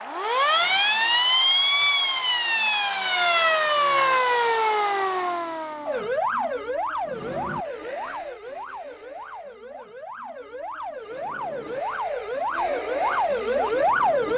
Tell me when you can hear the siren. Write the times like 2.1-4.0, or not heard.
0.1-14.3.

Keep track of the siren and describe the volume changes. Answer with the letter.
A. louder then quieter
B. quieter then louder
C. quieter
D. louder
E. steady
B.